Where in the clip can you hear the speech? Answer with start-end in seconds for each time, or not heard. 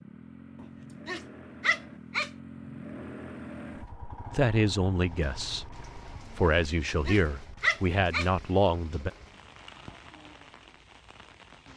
4.3-5.7, 6.3-9.1.